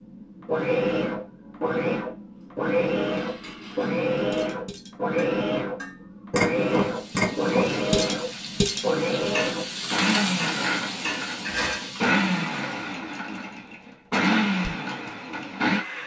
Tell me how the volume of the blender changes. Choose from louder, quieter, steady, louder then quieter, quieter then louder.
steady.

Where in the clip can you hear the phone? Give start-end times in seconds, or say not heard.
not heard.